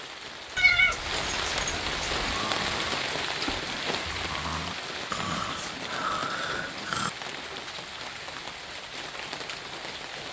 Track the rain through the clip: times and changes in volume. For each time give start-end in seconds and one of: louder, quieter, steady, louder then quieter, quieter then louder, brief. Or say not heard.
0.0-10.2 quieter.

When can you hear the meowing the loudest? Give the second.
1 s.